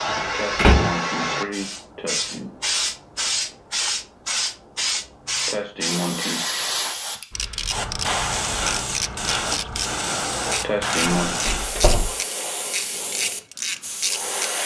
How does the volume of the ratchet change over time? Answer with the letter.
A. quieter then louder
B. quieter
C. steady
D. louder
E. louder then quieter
C.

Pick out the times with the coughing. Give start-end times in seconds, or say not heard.
0.3-2.5, 5.5-6.5, 10.6-11.3.